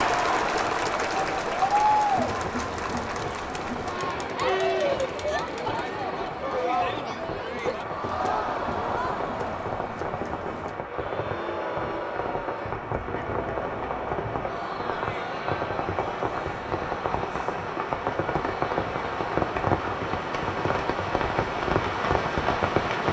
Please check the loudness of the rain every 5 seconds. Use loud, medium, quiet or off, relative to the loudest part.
medium, medium, medium, loud, loud.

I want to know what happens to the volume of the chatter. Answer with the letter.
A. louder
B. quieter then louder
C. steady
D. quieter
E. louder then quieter
D.